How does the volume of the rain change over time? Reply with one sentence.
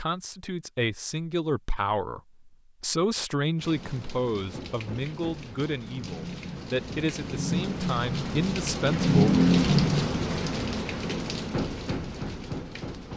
The volume of the rain goes up, then down.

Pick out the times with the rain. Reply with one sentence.
You can hear the rain from 3.5 to 13.1 s.